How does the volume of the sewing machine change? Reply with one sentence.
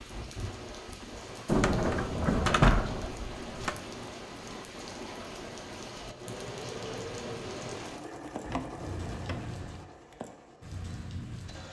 The volume of the sewing machine goes down.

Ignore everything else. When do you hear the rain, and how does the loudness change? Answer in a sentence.
You can hear the rain from 0.0 to 11.6 s, at a steady volume.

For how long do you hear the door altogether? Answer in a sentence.
You can hear the door for 3 seconds altogether.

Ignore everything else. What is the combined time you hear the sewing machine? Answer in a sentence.
You can hear the sewing machine for 6 seconds altogether.